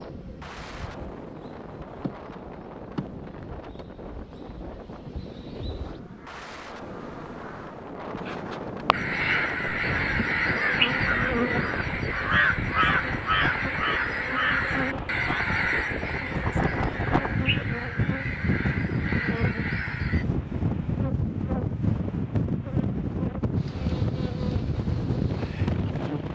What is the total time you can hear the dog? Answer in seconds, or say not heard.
not heard.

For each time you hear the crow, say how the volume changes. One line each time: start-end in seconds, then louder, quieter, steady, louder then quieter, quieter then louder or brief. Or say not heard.
8.9-20.2 quieter.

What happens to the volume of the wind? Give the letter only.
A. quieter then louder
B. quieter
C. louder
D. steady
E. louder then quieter
C.